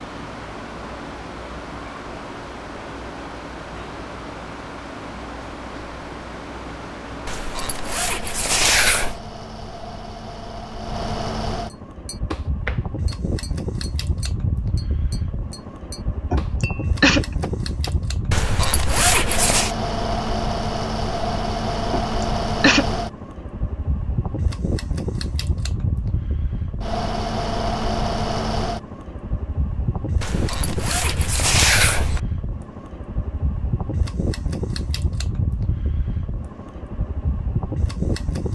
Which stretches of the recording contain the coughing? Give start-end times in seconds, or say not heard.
16.3-17.2, 21.9-22.9.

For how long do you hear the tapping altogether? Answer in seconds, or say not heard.
6 s.